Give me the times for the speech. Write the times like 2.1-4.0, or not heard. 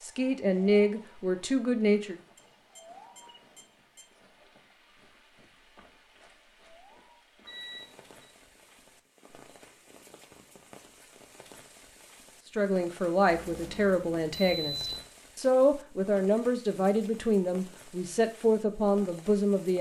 0.0-2.1, 12.6-19.7.